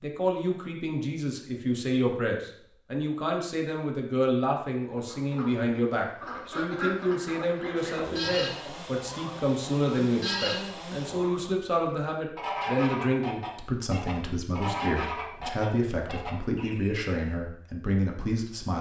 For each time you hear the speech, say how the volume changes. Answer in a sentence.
You can hear the speech from 0.0 to 18.7 s, at a steady volume.